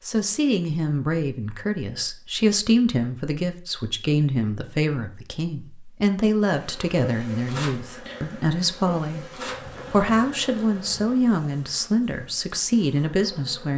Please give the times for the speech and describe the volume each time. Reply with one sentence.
You can hear the speech from 0.1 to 13.7 s, at a steady volume.